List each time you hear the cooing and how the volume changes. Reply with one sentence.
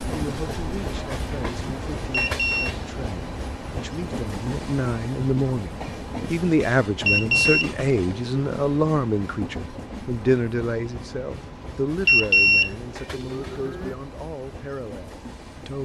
The cooing can't be heard in this clip.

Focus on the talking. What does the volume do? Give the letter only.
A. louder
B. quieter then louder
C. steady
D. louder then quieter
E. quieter
D.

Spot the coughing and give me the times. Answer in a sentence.
The coughing can't be heard in this clip.